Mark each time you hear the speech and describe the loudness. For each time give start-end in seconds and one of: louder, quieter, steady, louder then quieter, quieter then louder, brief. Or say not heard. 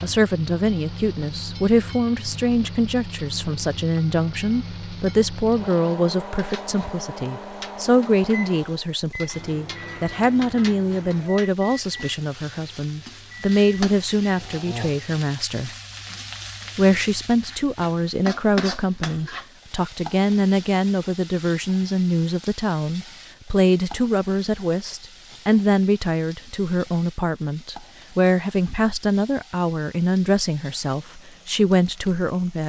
0.0-15.7 steady
16.8-32.6 steady.